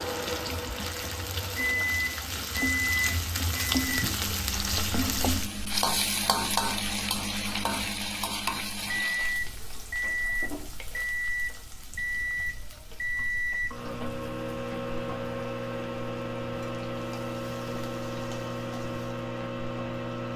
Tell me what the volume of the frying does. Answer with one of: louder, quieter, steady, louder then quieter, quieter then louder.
quieter.